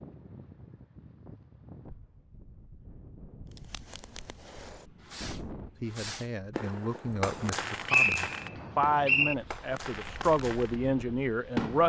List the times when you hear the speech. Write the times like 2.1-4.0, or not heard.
5.8-11.8.